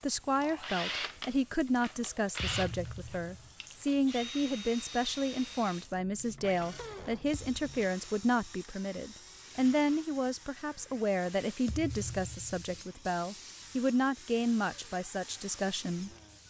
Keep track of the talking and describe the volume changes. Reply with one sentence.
The volume of the talking stays about the same.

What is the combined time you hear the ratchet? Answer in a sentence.
You can't hear the ratchet here.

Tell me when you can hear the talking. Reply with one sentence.
You can hear the talking from 0.0 to 16.1 s.